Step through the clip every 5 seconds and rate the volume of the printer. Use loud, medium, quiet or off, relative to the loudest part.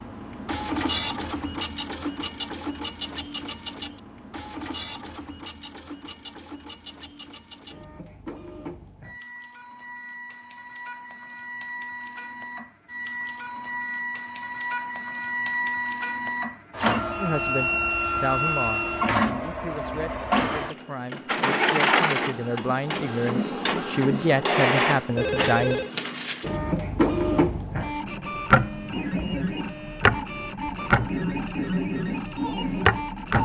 medium, quiet, medium, loud, loud, loud, loud.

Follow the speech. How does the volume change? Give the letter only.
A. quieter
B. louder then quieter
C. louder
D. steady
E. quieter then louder
E.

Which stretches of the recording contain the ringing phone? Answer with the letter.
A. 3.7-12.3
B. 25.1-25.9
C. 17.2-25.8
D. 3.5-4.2
B.